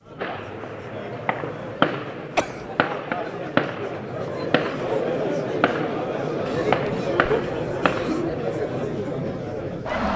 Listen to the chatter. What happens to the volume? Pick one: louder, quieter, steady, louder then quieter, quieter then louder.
louder.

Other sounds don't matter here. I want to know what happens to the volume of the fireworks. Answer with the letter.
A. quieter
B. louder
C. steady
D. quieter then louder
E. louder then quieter
D.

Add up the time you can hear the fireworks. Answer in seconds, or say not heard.
8 s.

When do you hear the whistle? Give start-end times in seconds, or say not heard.
not heard.